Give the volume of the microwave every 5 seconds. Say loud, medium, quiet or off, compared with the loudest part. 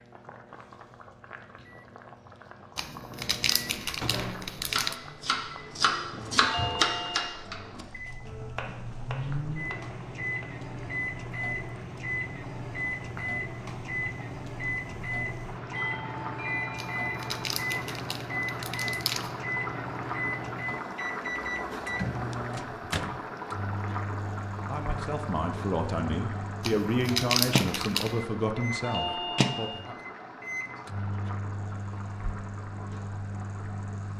medium, loud, loud, loud, loud, loud, medium.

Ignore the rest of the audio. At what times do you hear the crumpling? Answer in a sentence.
The crumpling can be heard from 2.8 to 5.0 s, from 16.8 to 19.4 s and from 26.6 to 28.2 s.